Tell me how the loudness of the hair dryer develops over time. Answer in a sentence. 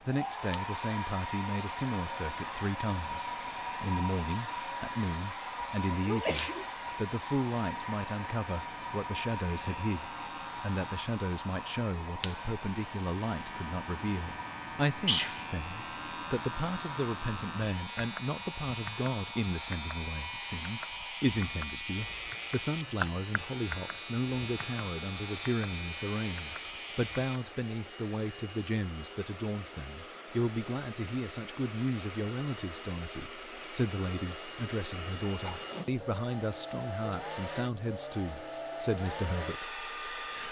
The loudness of the hair dryer goes down, then up.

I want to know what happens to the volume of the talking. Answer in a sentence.
The loudness of the talking stays about the same.